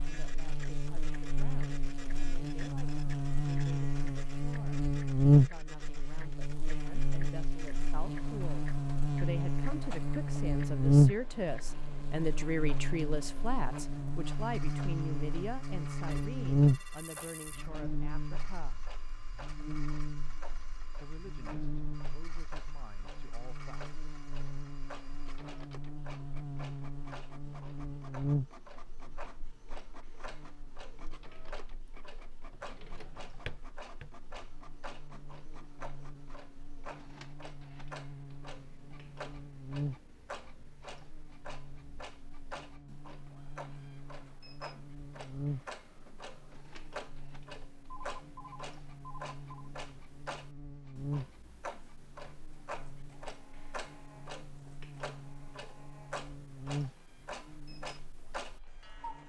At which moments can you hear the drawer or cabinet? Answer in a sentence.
You can hear the drawer or cabinet from 32.5 to 34.1 s.